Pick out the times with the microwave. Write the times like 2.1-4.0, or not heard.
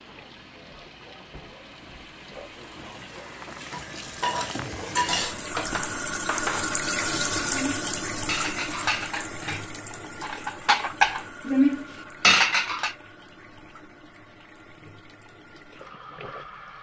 not heard.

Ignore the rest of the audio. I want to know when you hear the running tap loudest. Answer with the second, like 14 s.
7 s.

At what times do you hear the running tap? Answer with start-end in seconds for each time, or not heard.
0.0-16.7.